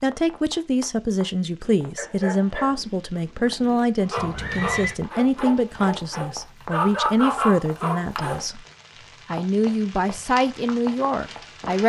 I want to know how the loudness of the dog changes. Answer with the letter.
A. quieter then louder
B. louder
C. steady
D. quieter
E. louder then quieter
B.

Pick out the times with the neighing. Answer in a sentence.
The neighing can be heard from 4.2 to 5.0 s.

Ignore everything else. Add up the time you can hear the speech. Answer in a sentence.
The speech can be heard for 11 seconds in total.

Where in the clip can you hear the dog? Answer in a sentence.
The dog can be heard from 1.8 to 8.4 s.